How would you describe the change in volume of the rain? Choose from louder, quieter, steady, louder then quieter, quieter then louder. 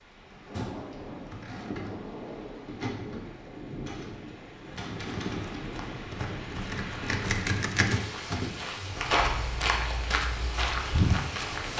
steady.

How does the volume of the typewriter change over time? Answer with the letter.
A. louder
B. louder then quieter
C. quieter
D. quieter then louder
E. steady
A.